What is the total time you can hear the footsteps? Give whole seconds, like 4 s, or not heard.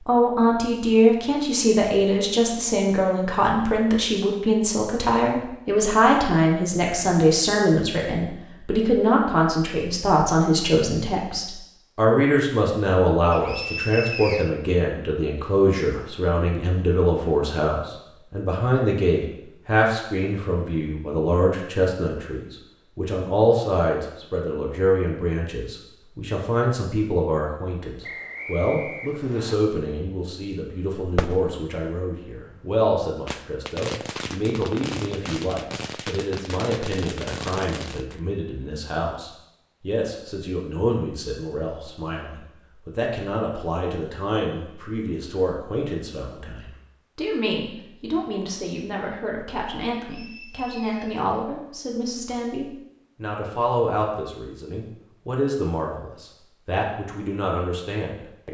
not heard.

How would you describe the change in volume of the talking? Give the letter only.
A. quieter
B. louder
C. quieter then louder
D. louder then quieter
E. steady
A.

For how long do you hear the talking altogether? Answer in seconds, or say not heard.
58 s.